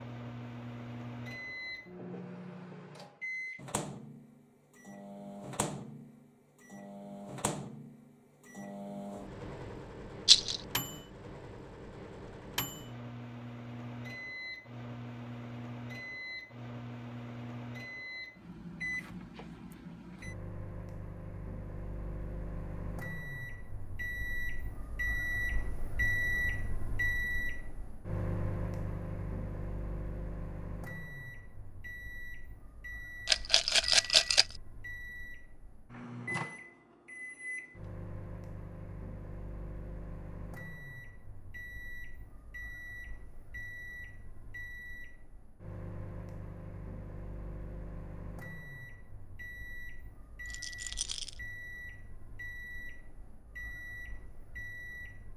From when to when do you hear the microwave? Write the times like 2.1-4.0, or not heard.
0.0-55.3.